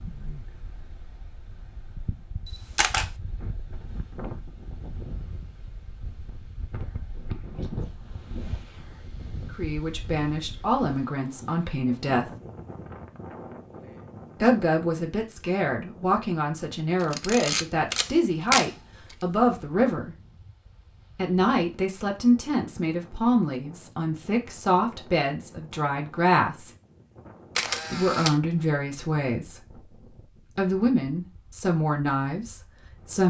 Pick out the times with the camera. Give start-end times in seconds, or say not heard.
2.5-3.1, 17.0-19.1, 27.6-28.4.